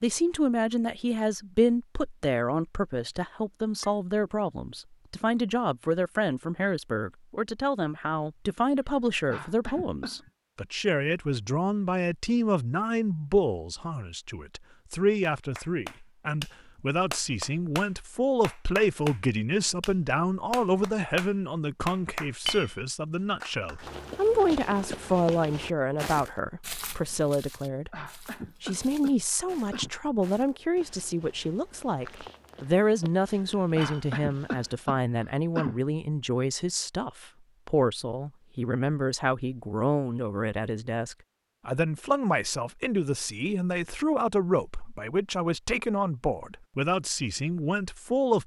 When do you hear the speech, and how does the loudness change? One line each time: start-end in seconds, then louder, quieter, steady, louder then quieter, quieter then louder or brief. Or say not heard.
0.0-48.4 steady.